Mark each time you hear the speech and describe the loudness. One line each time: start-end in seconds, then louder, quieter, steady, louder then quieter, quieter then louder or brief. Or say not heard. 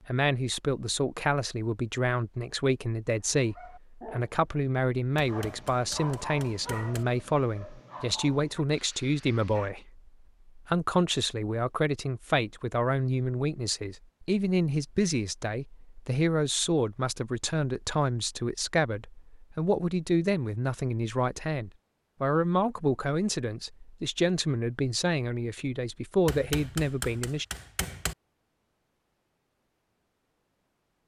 0.1-27.4 steady.